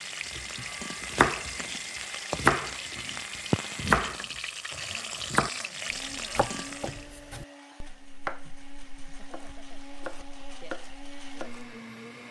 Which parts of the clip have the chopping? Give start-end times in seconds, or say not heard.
0.3-1.6, 2.3-4.4, 5.2-11.8.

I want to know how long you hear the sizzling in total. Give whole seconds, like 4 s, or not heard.
7 s.